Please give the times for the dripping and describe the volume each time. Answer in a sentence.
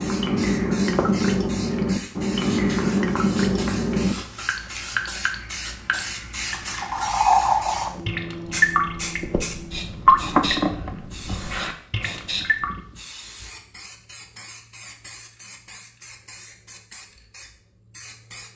The dripping can be heard from 0.0 to 12.8 s, at a steady volume.